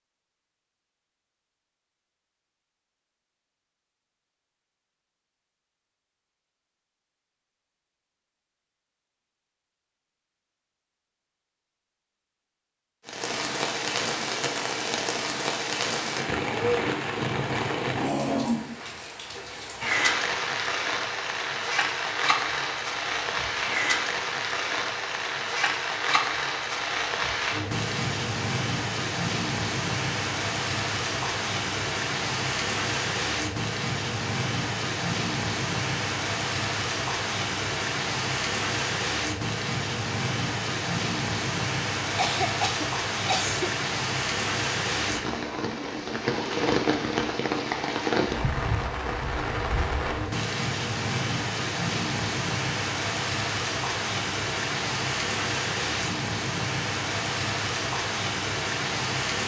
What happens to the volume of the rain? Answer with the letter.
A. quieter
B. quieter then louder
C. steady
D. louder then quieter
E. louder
C.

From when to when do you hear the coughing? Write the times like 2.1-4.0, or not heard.
42.1-43.8.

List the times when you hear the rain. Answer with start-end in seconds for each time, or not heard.
13.1-59.4.